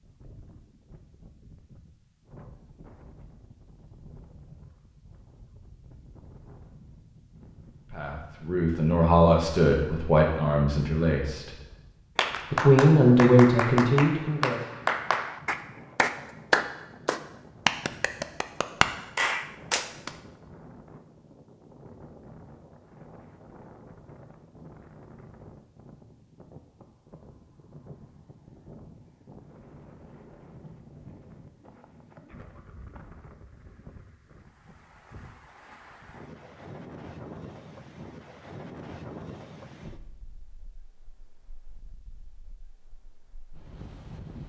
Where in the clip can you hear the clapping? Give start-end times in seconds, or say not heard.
12.2-20.1.